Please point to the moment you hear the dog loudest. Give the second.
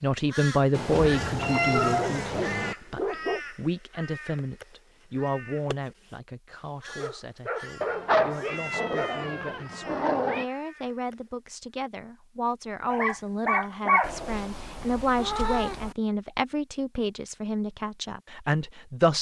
14 s.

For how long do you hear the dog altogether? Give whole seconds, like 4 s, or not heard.
6 s.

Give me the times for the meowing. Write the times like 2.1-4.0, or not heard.
0.7-2.8, 7.8-10.4, 14.0-15.9.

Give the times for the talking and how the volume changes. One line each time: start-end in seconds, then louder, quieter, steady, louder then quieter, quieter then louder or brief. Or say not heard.
0.0-19.1 quieter then louder.